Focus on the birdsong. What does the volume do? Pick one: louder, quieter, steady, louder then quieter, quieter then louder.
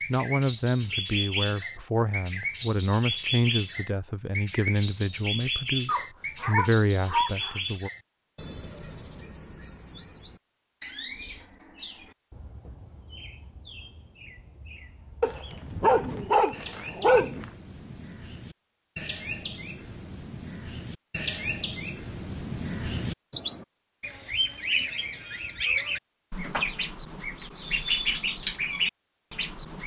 quieter then louder.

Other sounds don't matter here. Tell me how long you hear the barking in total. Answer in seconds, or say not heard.
4 s.